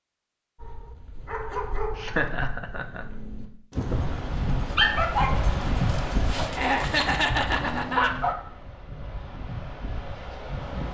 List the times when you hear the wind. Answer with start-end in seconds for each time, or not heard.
3.8-10.8.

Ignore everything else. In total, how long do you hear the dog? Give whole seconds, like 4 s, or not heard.
8 s.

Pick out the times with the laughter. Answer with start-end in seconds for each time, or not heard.
1.9-3.0, 6.5-8.2.